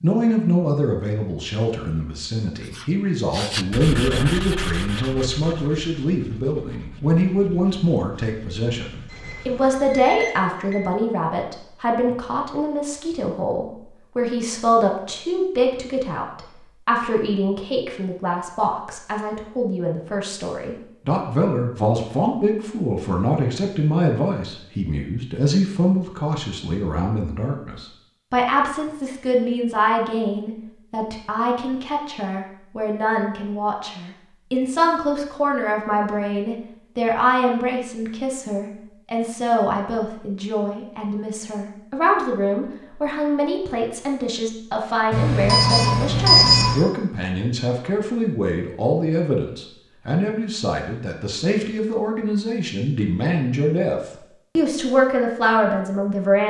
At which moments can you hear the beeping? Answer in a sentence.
The beeping can be heard from 9.1 to 10.8 s and from 45.1 to 46.8 s.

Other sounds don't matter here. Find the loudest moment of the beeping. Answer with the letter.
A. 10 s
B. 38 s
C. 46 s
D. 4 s
C.